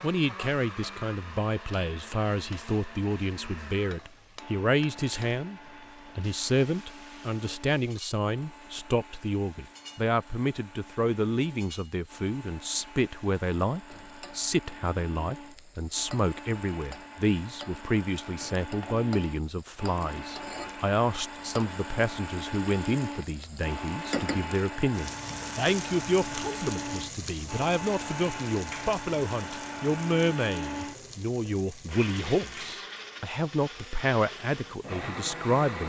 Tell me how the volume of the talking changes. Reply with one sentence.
The volume of the talking stays about the same.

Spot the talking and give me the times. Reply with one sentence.
You can hear the talking from 0.0 to 35.8 s.